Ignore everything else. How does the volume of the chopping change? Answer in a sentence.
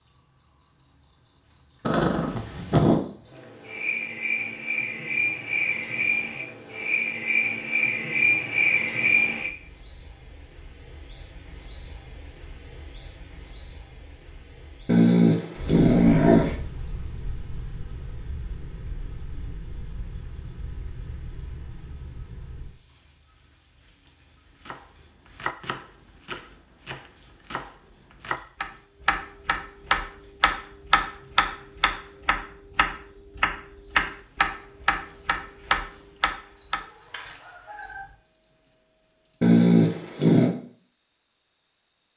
The volume of the chopping goes up.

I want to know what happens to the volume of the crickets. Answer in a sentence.
The loudness of the crickets goes up, then down.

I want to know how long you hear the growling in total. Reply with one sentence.
You can hear the growling for 4 seconds altogether.